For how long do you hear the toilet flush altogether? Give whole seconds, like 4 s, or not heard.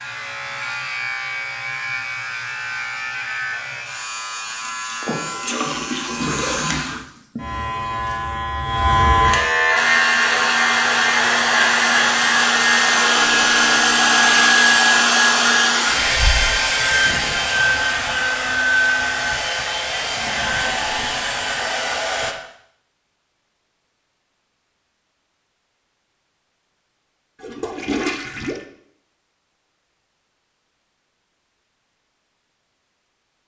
4 s.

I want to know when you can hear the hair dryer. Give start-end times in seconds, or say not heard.
9.8-22.4.